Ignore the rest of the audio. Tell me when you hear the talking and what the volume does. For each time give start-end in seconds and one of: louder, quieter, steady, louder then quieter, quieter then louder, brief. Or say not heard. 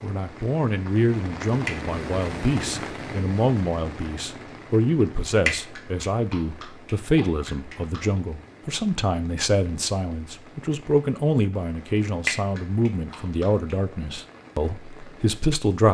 0.0-15.8 steady.